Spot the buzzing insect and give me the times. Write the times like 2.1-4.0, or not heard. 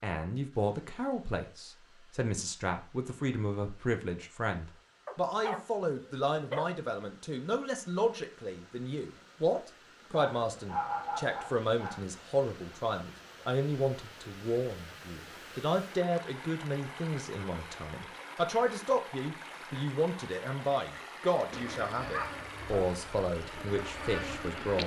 21.5-24.8.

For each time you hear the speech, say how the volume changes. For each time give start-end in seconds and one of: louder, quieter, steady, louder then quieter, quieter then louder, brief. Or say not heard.
0.0-24.8 steady.